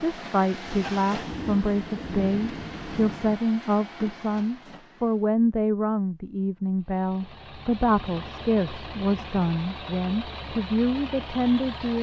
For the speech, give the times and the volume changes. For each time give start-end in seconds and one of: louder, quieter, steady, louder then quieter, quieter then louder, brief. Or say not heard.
0.0-11.9 steady.